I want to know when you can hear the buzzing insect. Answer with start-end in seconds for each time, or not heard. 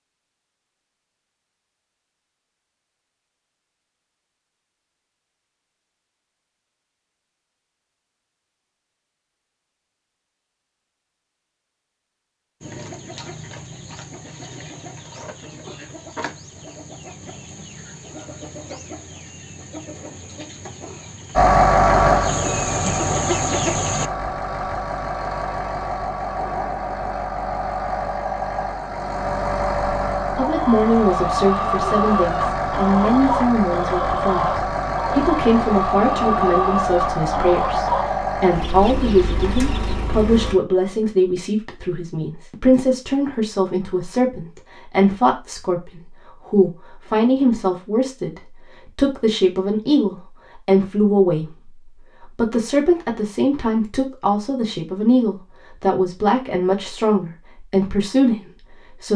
not heard.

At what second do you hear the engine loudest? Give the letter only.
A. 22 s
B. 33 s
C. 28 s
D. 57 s
A.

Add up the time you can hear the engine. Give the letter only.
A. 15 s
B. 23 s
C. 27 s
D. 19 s
D.